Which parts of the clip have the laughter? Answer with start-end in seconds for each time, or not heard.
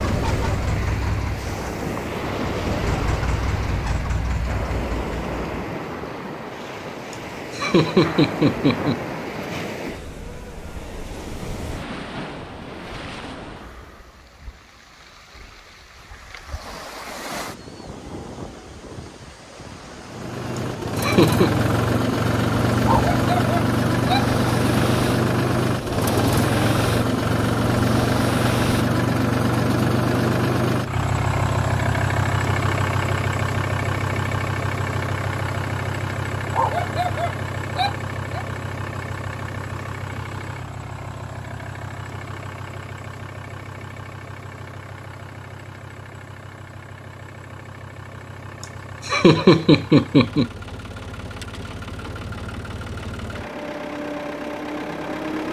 7.1-9.0, 20.6-21.6, 48.6-50.5.